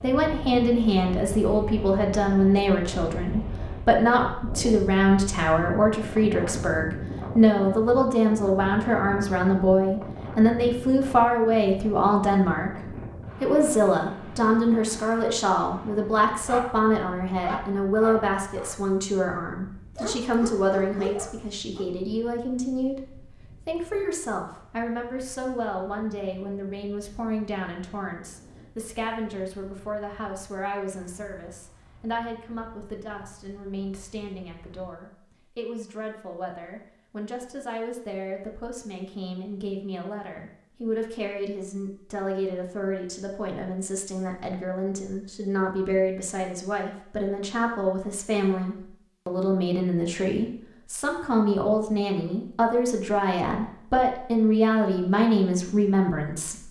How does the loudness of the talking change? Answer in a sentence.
The volume of the talking goes down, then up.